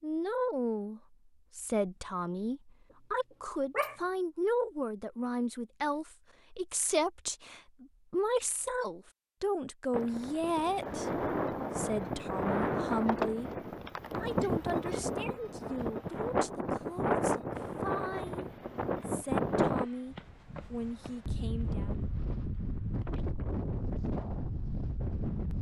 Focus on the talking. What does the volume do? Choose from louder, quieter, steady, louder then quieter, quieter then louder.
quieter.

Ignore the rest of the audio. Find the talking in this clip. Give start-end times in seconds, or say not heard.
0.0-13.5, 14.2-21.9.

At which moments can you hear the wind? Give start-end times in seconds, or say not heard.
9.9-25.5.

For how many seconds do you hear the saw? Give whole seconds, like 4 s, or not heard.
not heard.